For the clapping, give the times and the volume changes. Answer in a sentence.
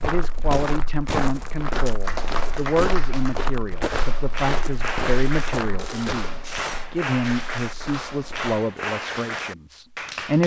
You can hear the clapping from 2.0 to 10.4 s, at a steady volume.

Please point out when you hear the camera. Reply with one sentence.
You can hear the camera from 5.8 to 6.9 s.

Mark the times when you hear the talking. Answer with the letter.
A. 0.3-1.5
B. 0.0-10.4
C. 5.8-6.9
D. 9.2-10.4
B.